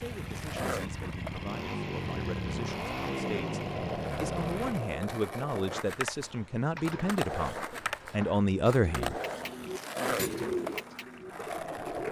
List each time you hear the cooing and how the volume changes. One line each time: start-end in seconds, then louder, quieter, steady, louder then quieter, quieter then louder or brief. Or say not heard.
6.7-12.0 louder then quieter.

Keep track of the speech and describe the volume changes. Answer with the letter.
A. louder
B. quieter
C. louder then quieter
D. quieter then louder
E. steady
A.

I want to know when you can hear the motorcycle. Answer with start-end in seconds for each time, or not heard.
0.0-5.0.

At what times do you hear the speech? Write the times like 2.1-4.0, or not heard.
0.0-9.2.